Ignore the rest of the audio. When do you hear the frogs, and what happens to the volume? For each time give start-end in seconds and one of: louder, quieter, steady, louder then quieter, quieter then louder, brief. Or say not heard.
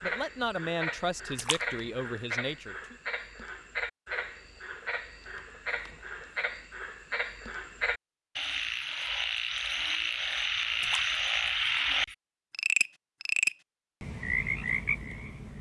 0.0-15.5 louder.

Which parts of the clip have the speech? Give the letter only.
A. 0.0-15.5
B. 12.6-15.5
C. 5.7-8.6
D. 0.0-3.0
D.